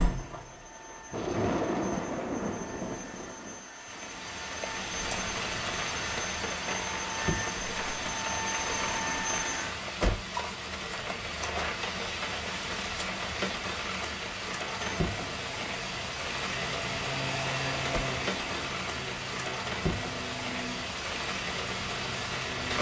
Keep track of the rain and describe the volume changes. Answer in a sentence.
The loudness of the rain stays about the same.